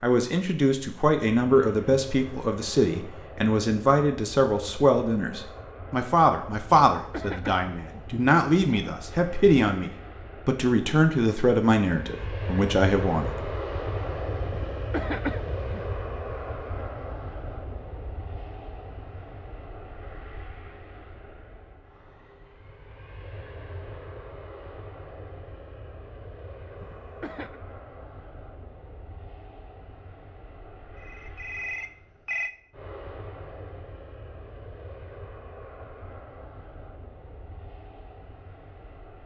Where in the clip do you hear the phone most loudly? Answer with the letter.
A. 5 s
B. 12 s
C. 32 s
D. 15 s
C.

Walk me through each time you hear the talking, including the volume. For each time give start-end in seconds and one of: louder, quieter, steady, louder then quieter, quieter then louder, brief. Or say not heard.
0.0-13.4 steady.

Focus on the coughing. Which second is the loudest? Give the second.
15 s.